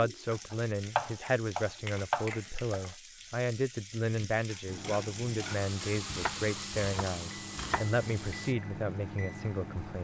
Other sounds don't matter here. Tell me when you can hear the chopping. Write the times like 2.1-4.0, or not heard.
0.5-2.8, 6.0-8.0.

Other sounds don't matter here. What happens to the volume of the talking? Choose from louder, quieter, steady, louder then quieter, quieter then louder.
steady.